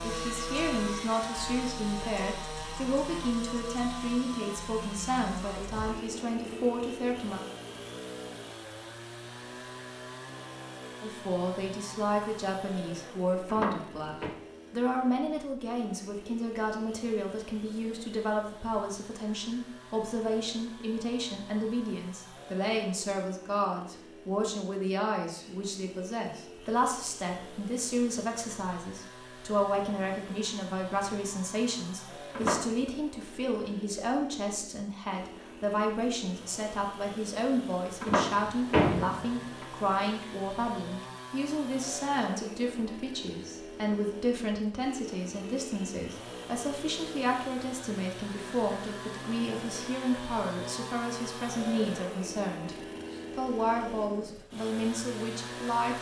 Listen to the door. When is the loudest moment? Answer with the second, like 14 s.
39 s.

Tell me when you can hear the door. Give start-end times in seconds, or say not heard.
13.4-14.3, 32.4-32.9, 38.0-39.6.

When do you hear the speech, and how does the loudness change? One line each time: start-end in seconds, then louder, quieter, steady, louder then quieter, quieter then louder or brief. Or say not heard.
0.0-7.4 steady
11.0-55.9 steady.